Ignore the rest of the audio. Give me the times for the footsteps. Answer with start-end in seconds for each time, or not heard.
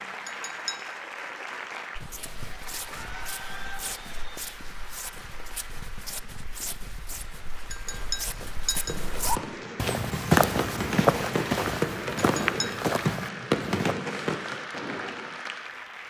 1.9-13.9.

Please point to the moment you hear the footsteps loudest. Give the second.
10 s.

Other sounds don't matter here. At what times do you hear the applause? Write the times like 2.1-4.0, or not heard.
0.0-16.0.